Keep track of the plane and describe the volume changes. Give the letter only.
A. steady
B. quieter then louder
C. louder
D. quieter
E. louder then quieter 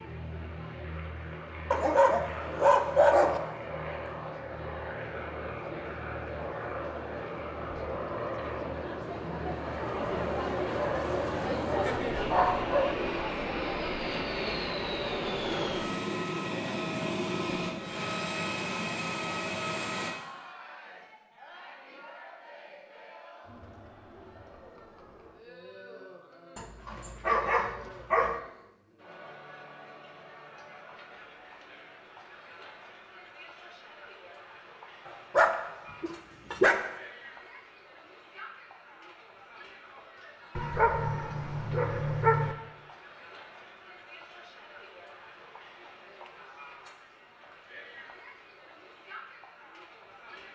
C.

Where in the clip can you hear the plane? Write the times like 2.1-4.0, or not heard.
0.0-20.1.